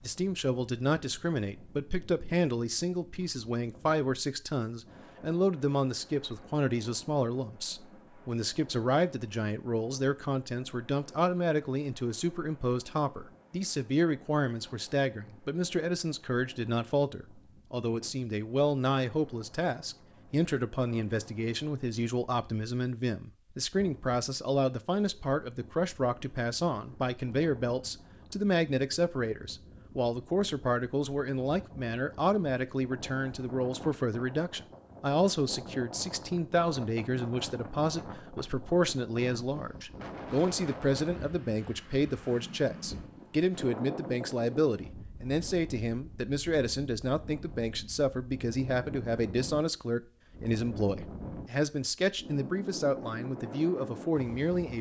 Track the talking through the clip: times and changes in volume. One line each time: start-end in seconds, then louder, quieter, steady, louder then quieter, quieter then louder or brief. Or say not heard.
0.0-54.7 steady.